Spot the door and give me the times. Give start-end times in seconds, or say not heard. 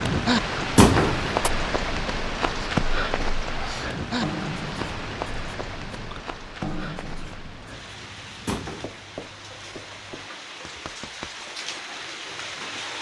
0.8-1.5, 8.4-8.9.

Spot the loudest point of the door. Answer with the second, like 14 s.
1 s.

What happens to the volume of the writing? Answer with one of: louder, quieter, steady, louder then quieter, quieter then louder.
quieter.